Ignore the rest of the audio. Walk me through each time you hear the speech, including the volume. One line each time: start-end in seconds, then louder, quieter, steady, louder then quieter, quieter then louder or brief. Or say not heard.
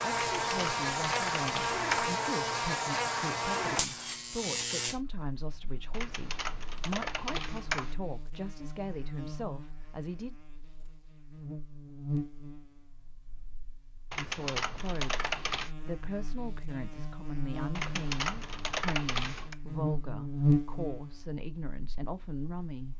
0.0-10.3 steady
14.2-22.9 steady.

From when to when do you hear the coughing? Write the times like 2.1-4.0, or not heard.
not heard.